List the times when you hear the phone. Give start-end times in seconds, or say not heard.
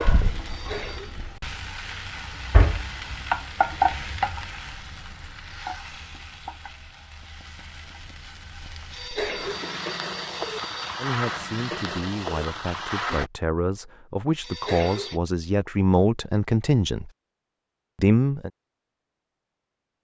0.5-1.1, 8.9-11.1, 14.4-15.2.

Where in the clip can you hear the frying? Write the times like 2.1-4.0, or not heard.
0.0-13.3.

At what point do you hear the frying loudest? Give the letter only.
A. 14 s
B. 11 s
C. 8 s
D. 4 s
D.